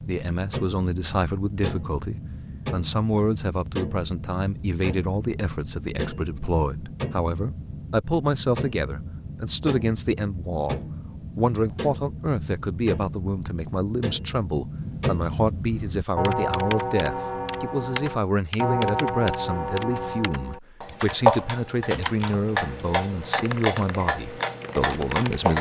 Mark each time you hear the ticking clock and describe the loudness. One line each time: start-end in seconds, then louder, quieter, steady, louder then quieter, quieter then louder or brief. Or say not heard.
0.0-25.5 louder.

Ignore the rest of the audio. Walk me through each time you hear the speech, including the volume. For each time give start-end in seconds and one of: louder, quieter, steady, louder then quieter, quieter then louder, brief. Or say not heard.
0.1-25.5 steady.